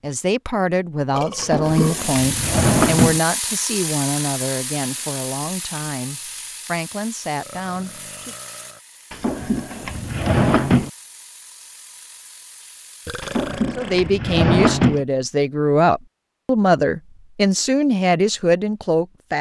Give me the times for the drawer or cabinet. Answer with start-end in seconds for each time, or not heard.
1.4-3.2, 9.1-10.9, 13.2-15.0.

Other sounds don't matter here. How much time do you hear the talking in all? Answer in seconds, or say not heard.
14 s.